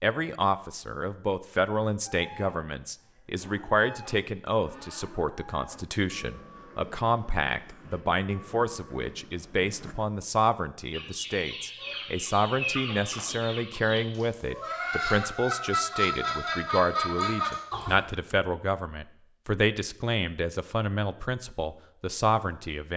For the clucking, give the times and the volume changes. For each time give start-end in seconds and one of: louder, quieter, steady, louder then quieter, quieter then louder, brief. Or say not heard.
10.9-17.9 louder.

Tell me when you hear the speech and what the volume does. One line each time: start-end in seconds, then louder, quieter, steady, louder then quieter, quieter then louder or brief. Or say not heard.
0.0-22.9 steady.